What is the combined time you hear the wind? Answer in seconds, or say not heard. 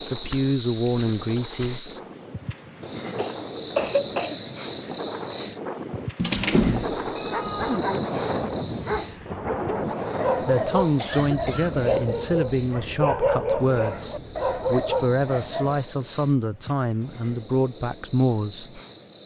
16 s.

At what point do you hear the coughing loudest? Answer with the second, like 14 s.
4 s.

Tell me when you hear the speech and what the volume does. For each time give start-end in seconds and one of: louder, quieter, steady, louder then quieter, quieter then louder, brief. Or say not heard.
0.1-1.8 brief
10.4-18.8 steady.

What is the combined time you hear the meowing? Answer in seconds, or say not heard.
2 s.